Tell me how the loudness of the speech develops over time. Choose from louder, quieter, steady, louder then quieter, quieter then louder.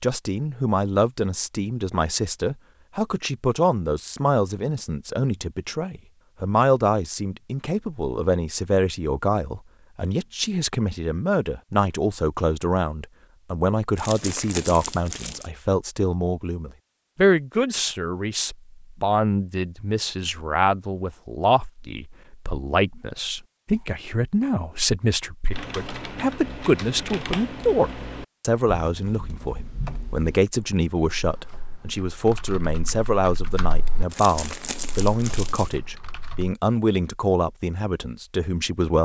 steady.